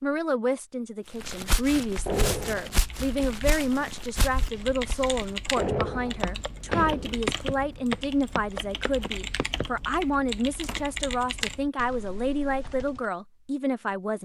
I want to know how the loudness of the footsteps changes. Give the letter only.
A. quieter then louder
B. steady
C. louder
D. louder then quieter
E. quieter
A.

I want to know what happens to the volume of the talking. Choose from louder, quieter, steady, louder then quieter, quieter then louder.
steady.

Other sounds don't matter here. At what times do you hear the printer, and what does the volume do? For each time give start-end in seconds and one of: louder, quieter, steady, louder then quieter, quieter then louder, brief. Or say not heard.
not heard.